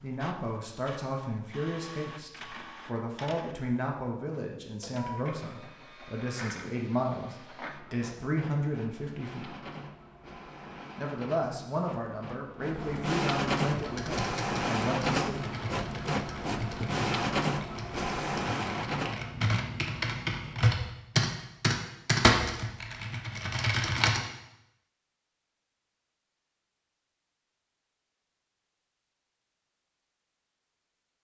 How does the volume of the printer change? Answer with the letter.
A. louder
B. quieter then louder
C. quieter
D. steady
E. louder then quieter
A.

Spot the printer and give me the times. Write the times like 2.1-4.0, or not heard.
0.0-21.0.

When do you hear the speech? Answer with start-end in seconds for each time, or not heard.
0.0-9.6, 10.9-15.4.